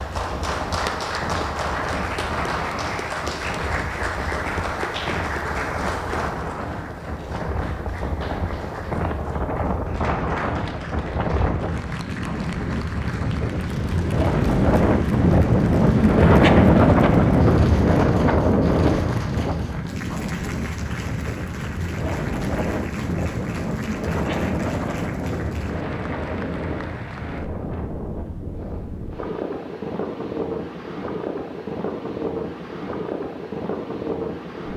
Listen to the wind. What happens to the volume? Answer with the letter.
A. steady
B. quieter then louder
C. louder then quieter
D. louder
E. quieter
C.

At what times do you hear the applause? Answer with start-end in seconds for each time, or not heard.
0.0-27.5.